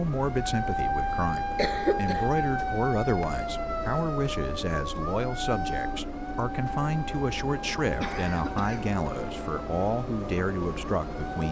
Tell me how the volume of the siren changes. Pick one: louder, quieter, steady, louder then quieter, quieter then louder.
quieter.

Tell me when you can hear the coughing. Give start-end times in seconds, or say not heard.
1.6-2.4, 8.0-8.9.